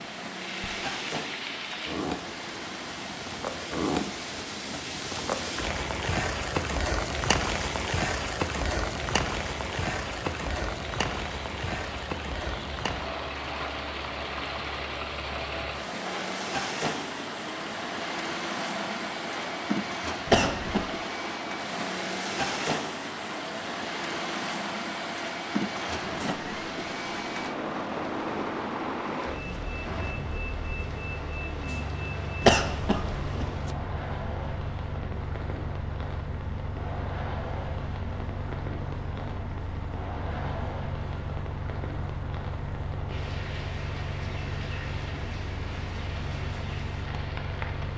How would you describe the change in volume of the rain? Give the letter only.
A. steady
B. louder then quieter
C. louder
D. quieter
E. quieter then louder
D.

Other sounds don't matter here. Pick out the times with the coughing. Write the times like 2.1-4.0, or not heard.
20.2-20.9, 32.4-33.5.